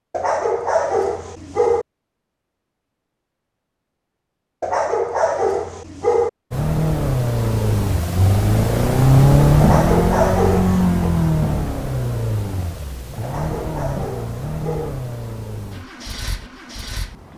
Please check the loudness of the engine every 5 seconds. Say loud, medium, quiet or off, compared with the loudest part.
off, loud, medium, quiet.